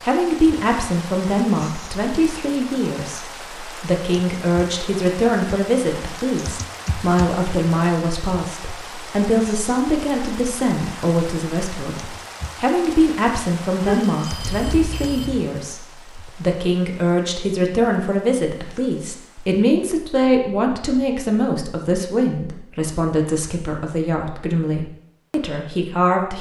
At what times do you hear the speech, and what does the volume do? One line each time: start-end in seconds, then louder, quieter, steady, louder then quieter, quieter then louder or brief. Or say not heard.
0.0-26.3 steady.